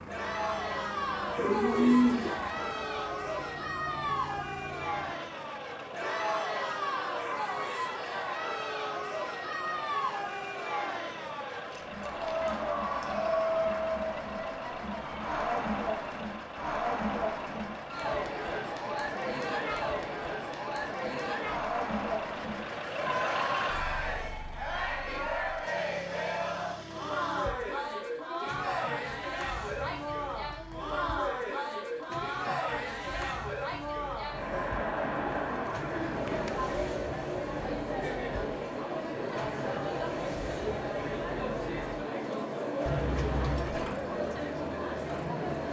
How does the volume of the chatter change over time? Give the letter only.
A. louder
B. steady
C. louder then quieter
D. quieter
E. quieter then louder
B.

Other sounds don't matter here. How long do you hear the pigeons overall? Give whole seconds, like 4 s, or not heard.
3 s.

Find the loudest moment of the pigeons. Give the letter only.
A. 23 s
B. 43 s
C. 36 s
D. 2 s
D.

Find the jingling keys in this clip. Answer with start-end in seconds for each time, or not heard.
11.7-12.5, 42.9-43.8.